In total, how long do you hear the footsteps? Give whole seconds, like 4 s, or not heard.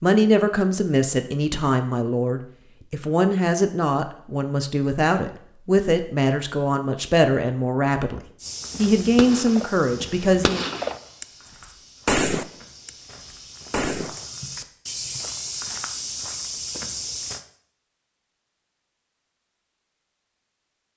9 s.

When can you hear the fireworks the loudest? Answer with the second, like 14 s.
12 s.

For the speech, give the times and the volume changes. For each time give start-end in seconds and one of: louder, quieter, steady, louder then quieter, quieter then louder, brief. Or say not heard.
0.0-10.7 steady.